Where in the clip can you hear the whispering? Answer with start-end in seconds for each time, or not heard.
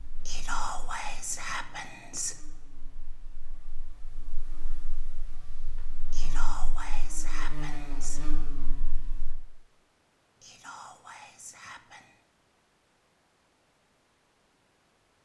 0.2-2.4, 6.0-8.2, 10.3-12.2.